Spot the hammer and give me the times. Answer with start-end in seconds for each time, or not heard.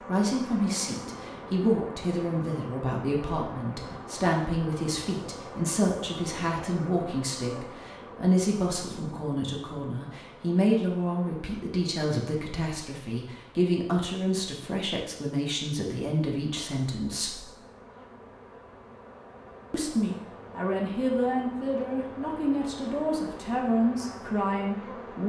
not heard.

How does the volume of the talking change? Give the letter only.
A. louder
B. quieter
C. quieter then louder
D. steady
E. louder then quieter
D.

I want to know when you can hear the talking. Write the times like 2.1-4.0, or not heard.
0.1-17.4, 19.7-25.2.